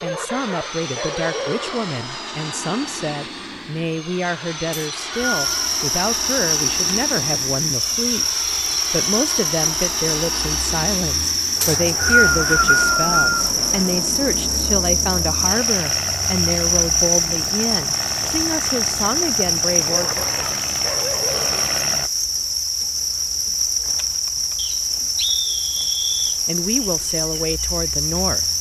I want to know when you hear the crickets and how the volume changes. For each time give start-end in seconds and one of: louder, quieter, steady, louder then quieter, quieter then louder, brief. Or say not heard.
5.1-28.5 steady.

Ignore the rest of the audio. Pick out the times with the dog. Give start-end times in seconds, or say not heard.
0.0-1.9, 19.9-21.8.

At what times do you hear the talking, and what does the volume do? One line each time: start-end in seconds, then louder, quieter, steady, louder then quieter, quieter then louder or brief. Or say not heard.
0.0-20.2 steady
26.4-28.5 brief.